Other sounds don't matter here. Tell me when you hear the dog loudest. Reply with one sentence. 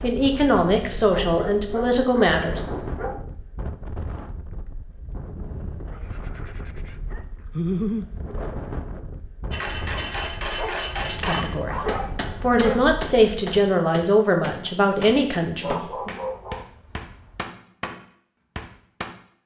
The volume of the dog peaks at 8 seconds.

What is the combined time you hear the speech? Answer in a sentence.
The speech can be heard for 8 seconds in total.